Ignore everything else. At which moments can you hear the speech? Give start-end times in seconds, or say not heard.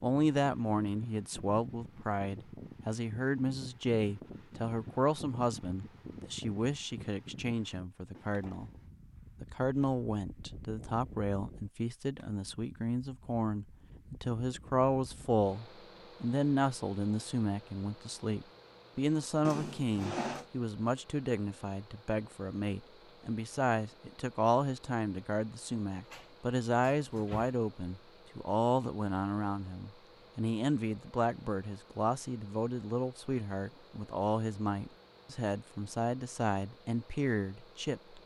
0.0-8.7, 9.4-38.2.